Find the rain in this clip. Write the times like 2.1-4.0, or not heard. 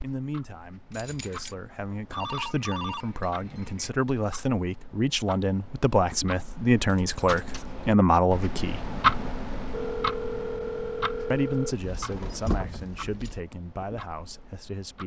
not heard.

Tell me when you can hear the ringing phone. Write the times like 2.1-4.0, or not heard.
2.1-4.0, 9.7-11.8.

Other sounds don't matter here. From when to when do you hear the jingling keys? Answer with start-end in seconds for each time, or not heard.
0.9-1.6, 6.8-7.7, 11.8-13.4.